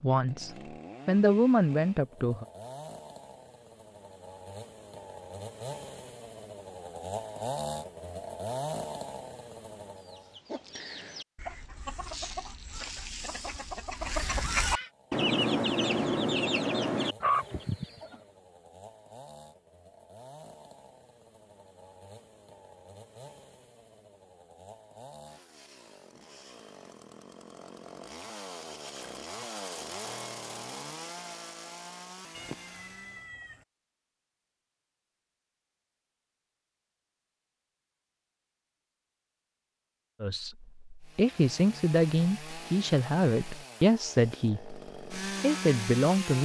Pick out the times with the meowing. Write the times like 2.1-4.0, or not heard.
32.3-33.6.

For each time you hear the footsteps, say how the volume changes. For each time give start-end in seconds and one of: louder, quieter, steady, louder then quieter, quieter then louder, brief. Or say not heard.
not heard.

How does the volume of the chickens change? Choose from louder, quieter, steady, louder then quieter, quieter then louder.
louder.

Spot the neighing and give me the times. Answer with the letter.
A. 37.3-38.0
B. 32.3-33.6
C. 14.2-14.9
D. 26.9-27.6
C.